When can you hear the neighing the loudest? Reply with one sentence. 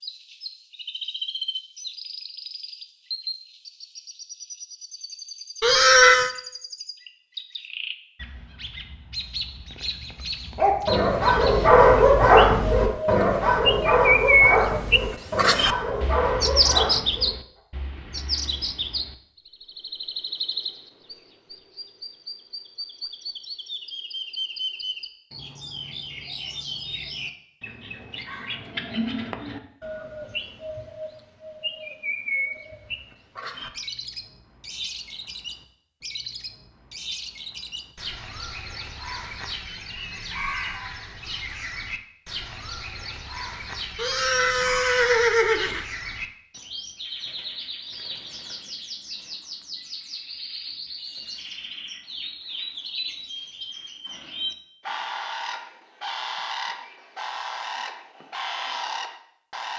The volume of the neighing peaks at 6 seconds.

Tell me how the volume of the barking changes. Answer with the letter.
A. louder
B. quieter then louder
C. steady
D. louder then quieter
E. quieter
E.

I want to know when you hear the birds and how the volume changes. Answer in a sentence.
The birds can be heard from 0.0 to 59.7 s, getting louder then quieter.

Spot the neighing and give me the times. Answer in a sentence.
You can hear the neighing from 5.6 to 6.3 s and from 44.0 to 45.9 s.